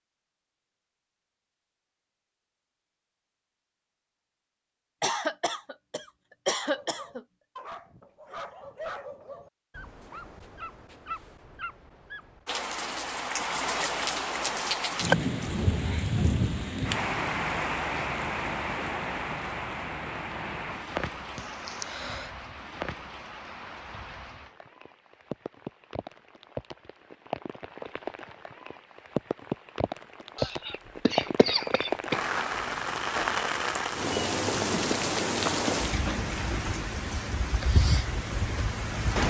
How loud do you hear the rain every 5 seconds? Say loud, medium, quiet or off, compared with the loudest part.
off, off, loud, loud, medium, medium, loud, loud.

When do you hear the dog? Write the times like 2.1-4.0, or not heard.
6.5-12.4.